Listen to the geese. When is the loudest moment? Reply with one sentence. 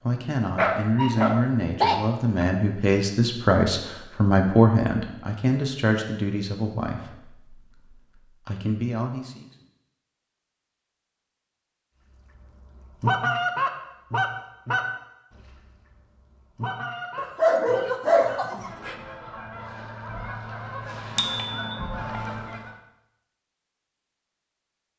The loudest moment of the geese is at 13 seconds.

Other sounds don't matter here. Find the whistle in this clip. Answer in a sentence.
The whistle can't be heard in this clip.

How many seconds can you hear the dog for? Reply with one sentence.
You can hear the dog for 4 seconds altogether.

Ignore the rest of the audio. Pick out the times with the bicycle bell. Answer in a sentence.
You can hear the bicycle bell from 21.1 to 21.7 s.